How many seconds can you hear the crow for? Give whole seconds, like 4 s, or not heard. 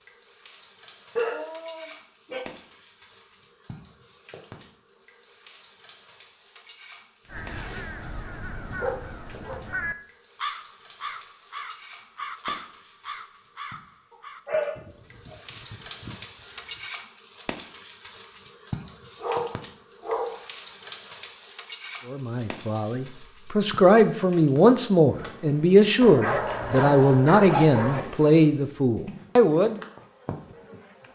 10 s.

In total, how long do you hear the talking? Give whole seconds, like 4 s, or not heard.
8 s.